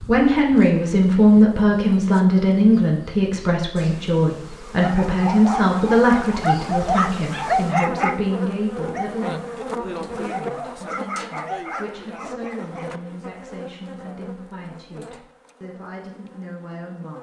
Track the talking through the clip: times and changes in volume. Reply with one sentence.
You can hear the talking from 0.0 to 17.1 s, getting quieter.